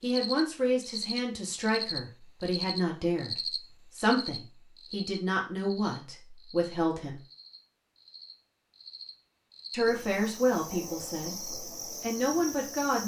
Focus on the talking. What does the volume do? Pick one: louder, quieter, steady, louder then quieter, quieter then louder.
steady.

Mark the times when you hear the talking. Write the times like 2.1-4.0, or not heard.
0.0-7.2, 9.7-13.0.